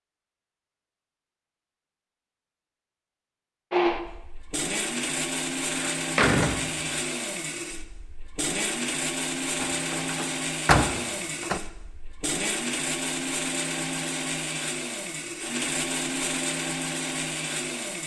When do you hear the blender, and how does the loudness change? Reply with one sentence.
You can hear the blender from 3.7 to 18.0 s, at a steady volume.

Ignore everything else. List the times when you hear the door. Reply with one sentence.
You can hear the door from 5.7 to 6.8 s and from 9.6 to 11.6 s.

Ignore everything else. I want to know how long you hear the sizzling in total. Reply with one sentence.
The sizzling can't be heard in this clip.